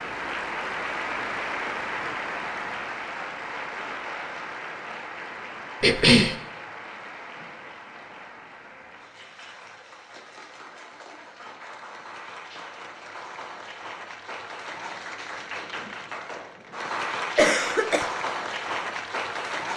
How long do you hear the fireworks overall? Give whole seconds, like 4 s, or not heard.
not heard.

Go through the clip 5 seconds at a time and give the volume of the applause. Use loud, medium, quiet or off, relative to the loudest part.
loud, medium, medium, loud.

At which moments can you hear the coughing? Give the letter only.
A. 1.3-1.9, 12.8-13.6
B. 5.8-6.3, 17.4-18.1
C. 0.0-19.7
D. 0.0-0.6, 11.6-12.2
B.